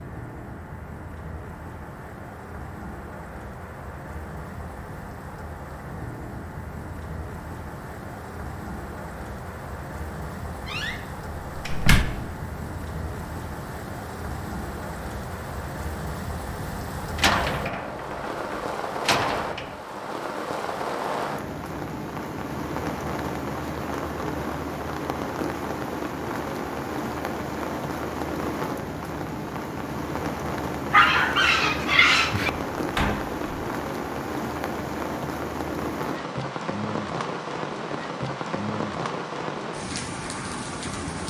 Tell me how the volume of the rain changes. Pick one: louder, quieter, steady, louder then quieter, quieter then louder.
louder.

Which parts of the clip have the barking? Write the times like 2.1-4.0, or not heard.
30.9-32.5.